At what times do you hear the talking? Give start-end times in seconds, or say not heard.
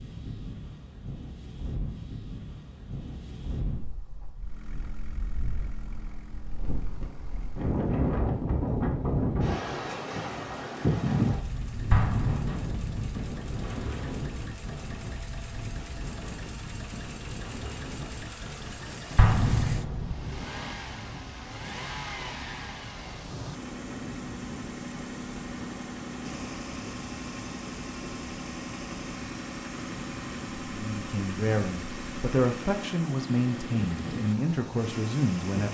30.7-35.6.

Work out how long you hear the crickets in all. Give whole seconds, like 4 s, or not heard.
not heard.